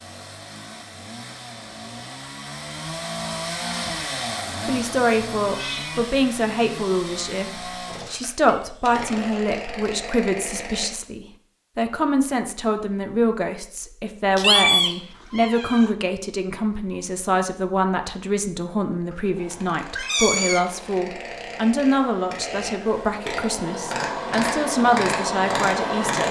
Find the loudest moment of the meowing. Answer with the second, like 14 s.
15 s.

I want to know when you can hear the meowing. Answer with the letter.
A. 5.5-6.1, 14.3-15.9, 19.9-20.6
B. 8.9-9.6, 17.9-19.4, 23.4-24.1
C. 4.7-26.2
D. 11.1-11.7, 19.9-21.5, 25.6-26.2
A.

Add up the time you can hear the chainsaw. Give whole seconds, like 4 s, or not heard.
18 s.